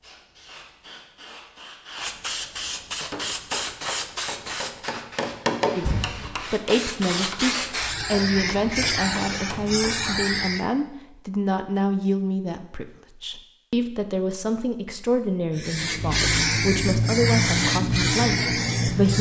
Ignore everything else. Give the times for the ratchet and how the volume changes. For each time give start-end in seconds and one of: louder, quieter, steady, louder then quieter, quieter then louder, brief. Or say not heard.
not heard.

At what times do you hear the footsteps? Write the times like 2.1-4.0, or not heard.
not heard.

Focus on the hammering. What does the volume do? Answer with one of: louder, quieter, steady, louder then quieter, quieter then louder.
louder then quieter.